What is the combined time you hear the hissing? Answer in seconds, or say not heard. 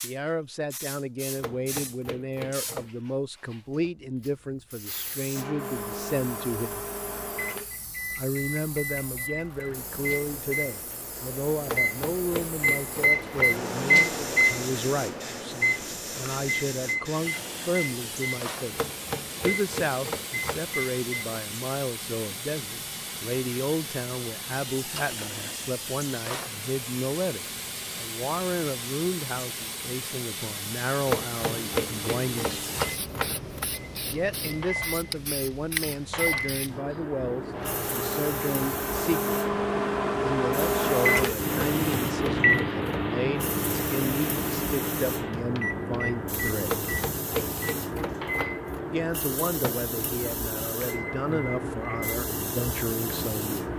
54 s.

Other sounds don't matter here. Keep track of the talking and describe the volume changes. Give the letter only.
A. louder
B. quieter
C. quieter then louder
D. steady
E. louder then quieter
D.